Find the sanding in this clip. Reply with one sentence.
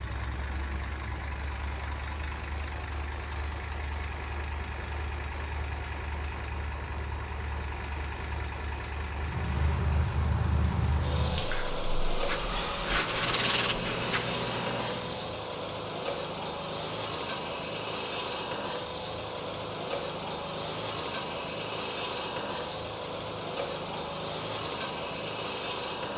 The sanding can be heard from 12.2 to 14.2 s.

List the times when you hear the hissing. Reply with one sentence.
You can hear the hissing from 9.1 to 15.3 s.